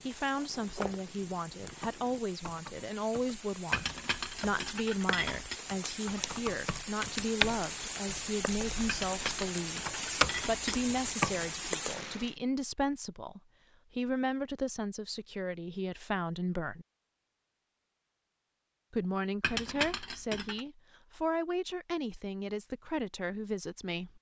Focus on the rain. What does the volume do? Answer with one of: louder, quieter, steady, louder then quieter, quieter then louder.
louder.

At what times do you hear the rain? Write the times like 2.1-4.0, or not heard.
0.0-12.3.